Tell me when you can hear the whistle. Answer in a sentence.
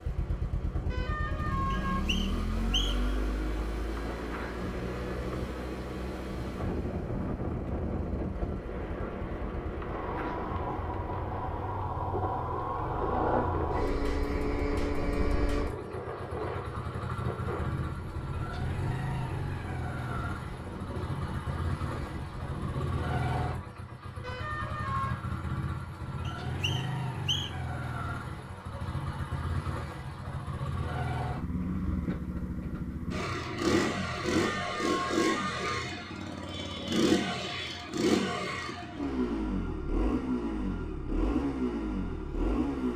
The whistle can be heard from 1.7 to 3.1 s and from 26.2 to 27.6 s.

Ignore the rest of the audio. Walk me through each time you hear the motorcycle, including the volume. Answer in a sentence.
The motorcycle can be heard from 0.0 to 42.9 s, getting louder.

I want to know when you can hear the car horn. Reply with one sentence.
The car horn can be heard from 0.8 to 2.0 s, from 24.2 to 25.2 s and from 34.4 to 35.8 s.